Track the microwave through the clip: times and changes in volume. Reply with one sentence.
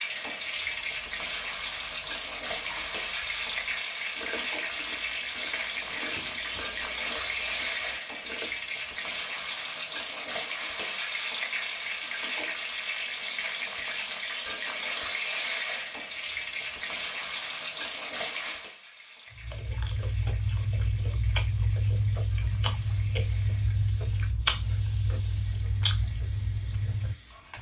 You can't hear the microwave here.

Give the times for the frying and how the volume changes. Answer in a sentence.
The frying can be heard from 0.0 to 27.5 s, getting quieter.